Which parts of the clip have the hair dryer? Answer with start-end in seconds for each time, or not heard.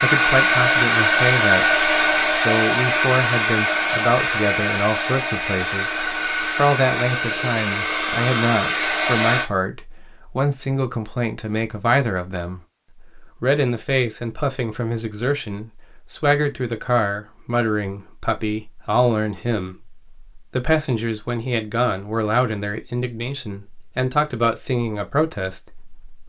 0.0-9.5.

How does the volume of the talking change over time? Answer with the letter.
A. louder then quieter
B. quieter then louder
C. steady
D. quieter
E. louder
C.